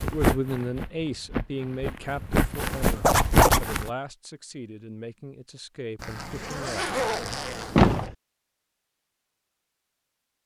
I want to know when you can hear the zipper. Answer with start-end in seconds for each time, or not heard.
3.0-3.6, 6.0-8.1.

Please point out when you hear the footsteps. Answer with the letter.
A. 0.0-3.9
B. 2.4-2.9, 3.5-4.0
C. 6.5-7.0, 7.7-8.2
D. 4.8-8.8
A.